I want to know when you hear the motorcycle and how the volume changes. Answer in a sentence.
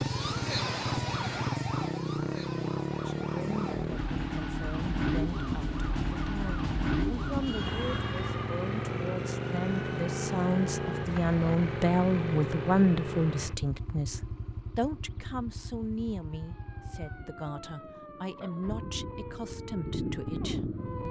You can hear the motorcycle from 0.0 to 21.0 s, getting quieter.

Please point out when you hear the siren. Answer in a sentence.
You can hear the siren from 0.0 to 8.4 s and from 16.2 to 21.0 s.